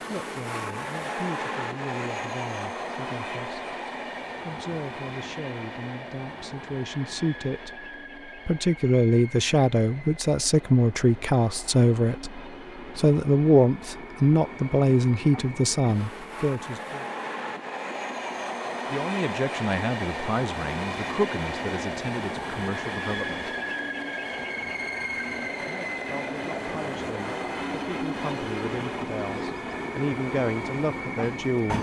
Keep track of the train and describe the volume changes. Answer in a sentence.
The loudness of the train goes down, then up.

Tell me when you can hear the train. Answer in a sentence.
You can hear the train from 0.0 to 31.7 s.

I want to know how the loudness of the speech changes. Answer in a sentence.
The loudness of the speech goes up, then down.